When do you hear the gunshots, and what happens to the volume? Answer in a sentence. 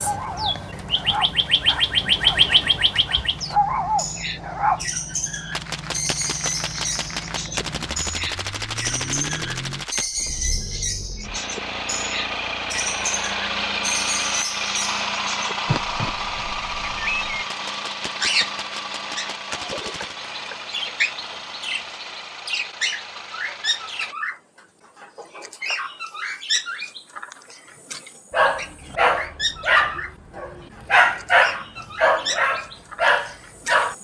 You can hear the gunshots from 5.5 to 10.1 s, at a steady volume; and briefly from 17.4 to 20.1 s.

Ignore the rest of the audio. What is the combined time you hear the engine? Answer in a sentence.
You can hear the engine for 24 seconds altogether.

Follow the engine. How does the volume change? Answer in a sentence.
The loudness of the engine goes up, then down.